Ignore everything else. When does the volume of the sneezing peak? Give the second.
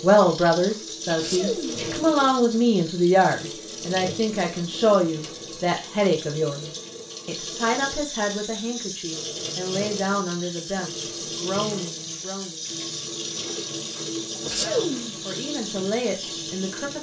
15 s.